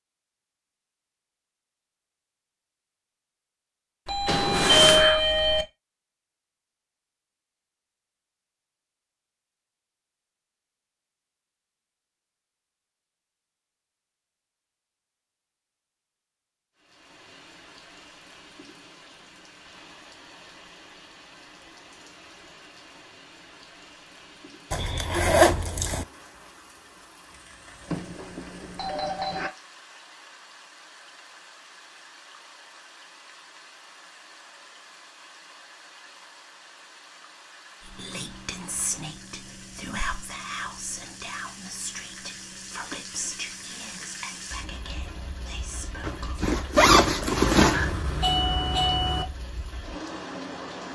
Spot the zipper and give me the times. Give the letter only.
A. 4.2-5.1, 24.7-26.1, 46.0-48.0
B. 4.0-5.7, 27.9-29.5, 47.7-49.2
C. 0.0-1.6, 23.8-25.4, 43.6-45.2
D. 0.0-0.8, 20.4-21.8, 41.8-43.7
A.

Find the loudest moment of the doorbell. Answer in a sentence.
The volume of the doorbell peaks at 5 seconds.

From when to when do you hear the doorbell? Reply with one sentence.
The doorbell can be heard from 4.0 to 5.7 s, from 27.9 to 29.5 s and from 47.7 to 49.2 s.